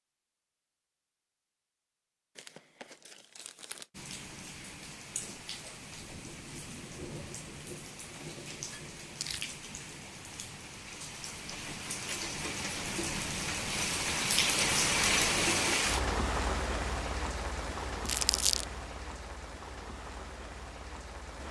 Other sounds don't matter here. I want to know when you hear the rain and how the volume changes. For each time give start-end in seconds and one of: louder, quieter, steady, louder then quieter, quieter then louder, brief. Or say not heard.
3.9-21.4 louder then quieter.